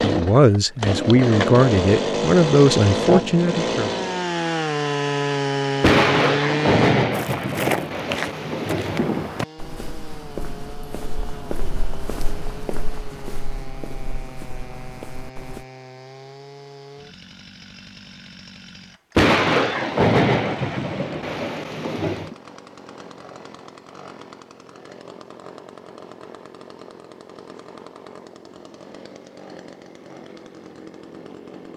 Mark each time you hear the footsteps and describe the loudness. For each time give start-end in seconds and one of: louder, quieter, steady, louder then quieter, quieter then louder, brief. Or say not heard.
7.1-15.7 quieter.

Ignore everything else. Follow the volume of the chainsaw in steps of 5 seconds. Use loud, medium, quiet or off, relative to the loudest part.
loud, loud, quiet, quiet, quiet, quiet, quiet.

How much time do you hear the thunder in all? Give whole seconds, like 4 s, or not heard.
7 s.